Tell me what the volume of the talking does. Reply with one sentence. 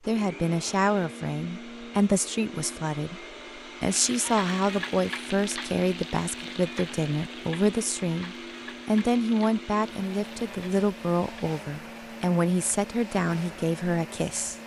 The loudness of the talking stays about the same.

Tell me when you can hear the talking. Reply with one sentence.
You can hear the talking from 0.1 to 3.2 s and from 3.8 to 14.6 s.